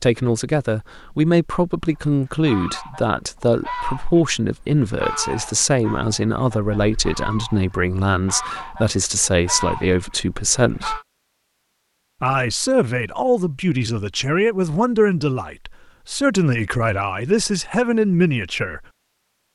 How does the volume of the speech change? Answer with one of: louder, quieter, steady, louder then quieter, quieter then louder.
steady.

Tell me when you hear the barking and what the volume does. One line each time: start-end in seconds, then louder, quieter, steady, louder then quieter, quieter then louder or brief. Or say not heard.
not heard.